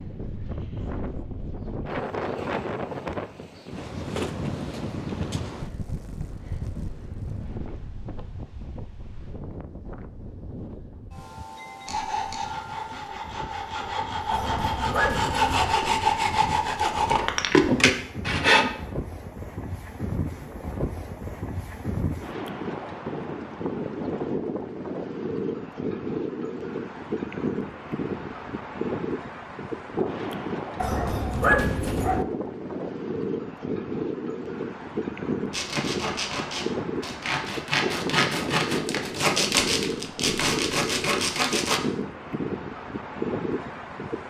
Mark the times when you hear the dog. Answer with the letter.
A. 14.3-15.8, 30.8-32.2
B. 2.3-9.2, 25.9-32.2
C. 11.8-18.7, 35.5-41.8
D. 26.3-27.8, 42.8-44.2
A.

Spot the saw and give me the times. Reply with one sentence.
You can hear the saw from 11.8 to 18.7 s and from 35.5 to 41.8 s.